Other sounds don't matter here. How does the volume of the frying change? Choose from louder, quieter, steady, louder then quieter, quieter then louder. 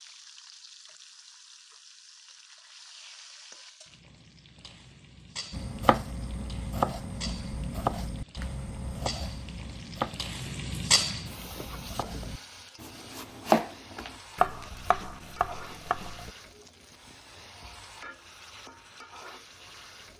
louder then quieter.